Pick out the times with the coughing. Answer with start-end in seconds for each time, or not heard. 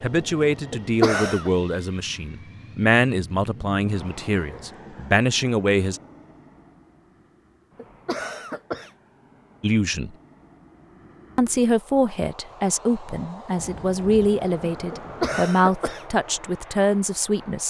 0.7-1.5, 7.8-8.9, 14.9-16.1.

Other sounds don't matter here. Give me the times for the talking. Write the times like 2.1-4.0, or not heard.
0.0-6.0, 9.6-10.1, 11.3-17.6.